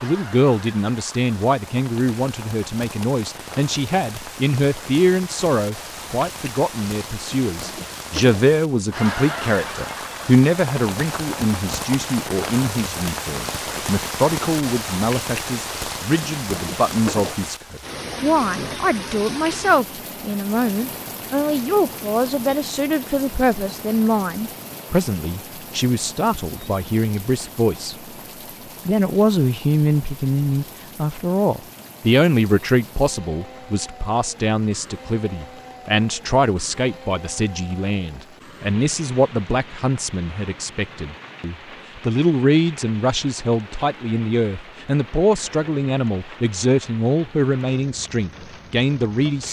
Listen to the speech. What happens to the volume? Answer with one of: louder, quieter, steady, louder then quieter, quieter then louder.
steady.